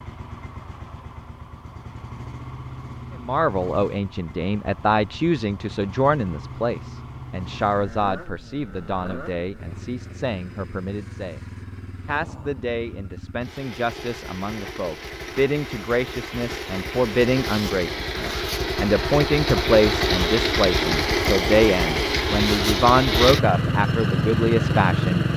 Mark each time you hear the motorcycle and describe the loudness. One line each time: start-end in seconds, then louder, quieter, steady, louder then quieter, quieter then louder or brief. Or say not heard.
0.0-25.3 louder.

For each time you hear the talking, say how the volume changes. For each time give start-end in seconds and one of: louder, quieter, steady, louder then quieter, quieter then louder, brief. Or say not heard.
3.1-11.4 quieter
12.1-25.2 louder.